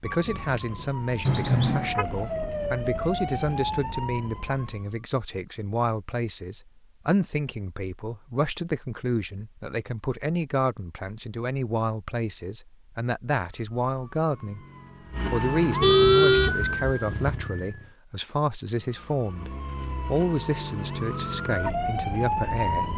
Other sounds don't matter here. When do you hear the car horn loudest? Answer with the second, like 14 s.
16 s.